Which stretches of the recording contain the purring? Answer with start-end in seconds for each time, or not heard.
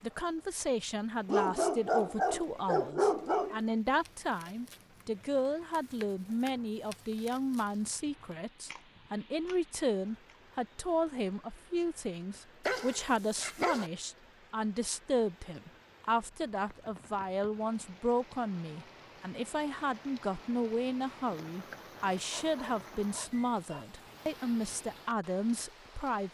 not heard.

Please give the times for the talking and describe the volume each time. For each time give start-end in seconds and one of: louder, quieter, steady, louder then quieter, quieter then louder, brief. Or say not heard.
0.0-26.2 steady.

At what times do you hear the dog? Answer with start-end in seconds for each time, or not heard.
1.2-3.6, 12.7-13.9, 22.3-23.9.